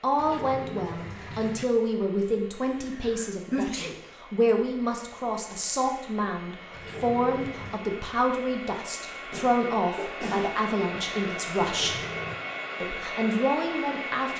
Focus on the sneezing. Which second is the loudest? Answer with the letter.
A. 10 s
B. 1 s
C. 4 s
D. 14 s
C.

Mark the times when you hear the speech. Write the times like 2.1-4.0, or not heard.
0.0-12.0, 12.8-14.3.